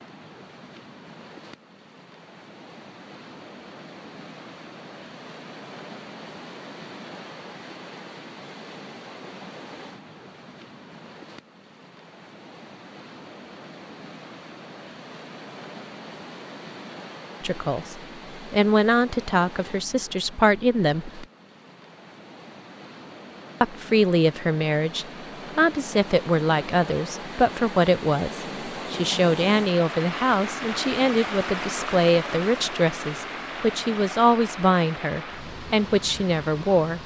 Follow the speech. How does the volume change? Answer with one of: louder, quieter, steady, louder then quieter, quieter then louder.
steady.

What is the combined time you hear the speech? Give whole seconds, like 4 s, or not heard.
17 s.